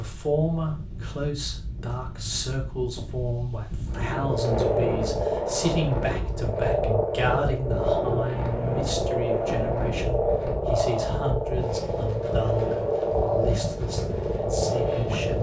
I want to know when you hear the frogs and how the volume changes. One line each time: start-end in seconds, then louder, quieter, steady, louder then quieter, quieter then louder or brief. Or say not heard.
4.1-15.3 steady.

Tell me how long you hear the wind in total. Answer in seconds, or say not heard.
15 s.